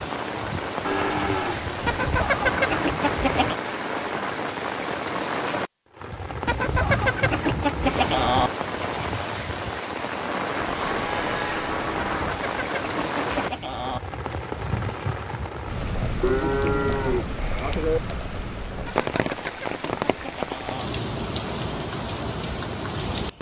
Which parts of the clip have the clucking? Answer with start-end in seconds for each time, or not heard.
1.9-3.5, 6.5-8.5, 11.9-14.0, 18.9-20.9.